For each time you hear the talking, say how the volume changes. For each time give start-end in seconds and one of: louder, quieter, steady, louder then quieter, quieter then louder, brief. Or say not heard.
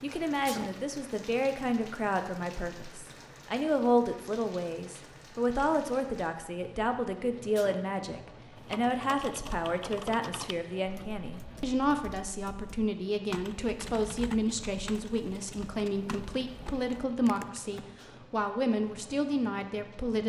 0.0-20.2 steady.